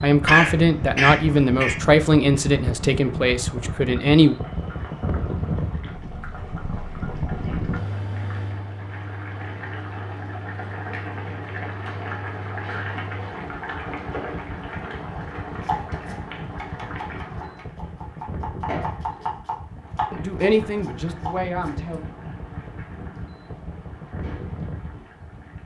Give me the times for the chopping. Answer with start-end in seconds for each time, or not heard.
15.7-21.9.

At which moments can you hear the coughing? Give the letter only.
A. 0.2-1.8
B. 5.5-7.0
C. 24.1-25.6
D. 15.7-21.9
A.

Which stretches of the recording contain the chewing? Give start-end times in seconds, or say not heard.
not heard.